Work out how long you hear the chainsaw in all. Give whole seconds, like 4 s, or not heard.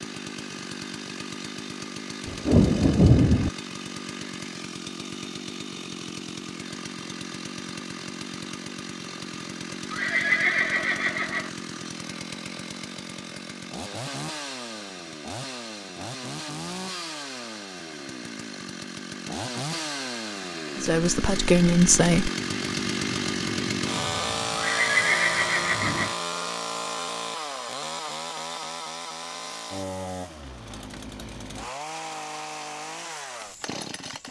34 s.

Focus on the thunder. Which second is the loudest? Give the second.
3 s.